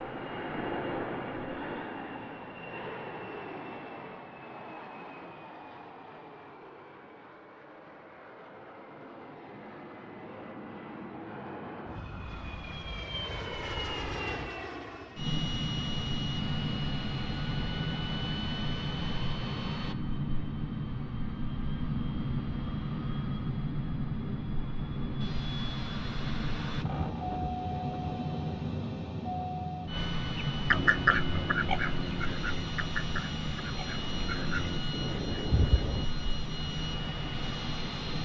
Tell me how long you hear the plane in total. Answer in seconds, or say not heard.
38 s.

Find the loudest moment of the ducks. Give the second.
31 s.